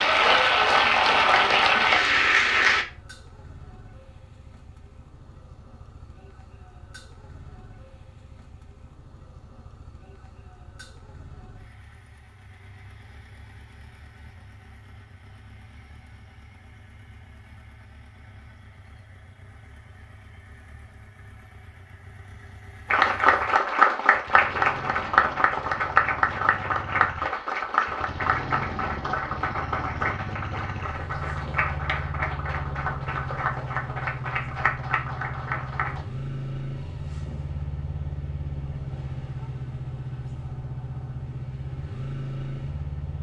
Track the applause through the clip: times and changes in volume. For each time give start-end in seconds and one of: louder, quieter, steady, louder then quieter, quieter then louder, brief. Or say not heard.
0.0-2.9 brief
22.9-36.0 quieter.